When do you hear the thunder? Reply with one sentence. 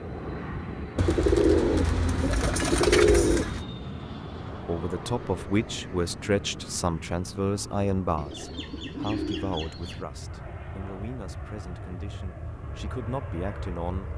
You can't hear the thunder here.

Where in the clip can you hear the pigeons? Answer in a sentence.
The pigeons can be heard from 0.9 to 3.6 s and from 8.2 to 10.1 s.